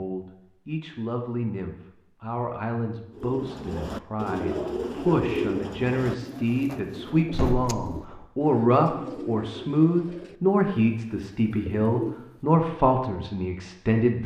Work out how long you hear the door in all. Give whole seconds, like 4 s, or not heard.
2 s.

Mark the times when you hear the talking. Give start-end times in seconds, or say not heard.
0.0-14.2.